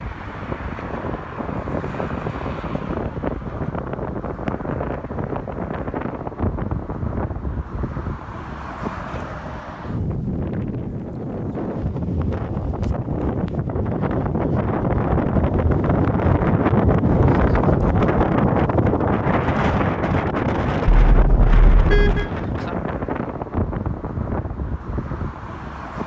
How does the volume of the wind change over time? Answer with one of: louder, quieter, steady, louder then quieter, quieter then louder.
louder then quieter.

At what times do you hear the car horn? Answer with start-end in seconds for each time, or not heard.
21.1-22.3.